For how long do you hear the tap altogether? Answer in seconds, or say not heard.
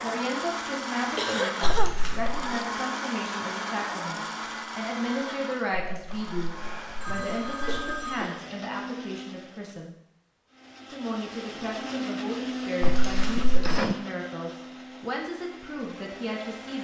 not heard.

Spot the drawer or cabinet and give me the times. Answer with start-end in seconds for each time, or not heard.
not heard.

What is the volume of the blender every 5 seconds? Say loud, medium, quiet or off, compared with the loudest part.
loud, medium, loud, medium.